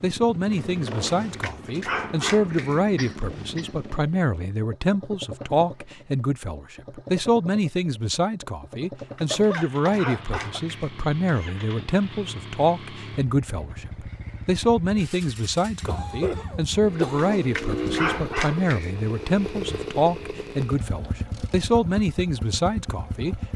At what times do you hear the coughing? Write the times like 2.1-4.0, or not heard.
3.0-3.8, 9.3-10.6, 15.8-17.6.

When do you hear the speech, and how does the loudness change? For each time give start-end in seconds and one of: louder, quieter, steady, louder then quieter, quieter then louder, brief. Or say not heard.
0.0-23.4 steady.